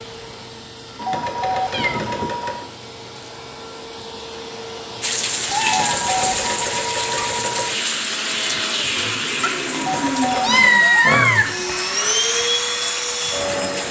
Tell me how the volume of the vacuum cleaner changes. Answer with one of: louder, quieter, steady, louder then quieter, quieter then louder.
louder.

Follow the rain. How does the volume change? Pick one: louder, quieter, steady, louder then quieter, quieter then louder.
quieter.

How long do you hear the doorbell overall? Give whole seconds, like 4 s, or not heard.
5 s.